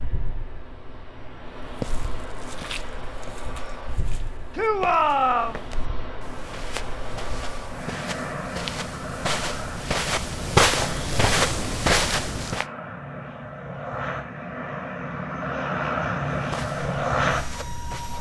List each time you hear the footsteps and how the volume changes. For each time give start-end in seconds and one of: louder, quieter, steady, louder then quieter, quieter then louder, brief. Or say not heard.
1.6-12.7 louder
16.3-18.1 brief.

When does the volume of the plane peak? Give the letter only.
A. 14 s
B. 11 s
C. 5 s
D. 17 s
D.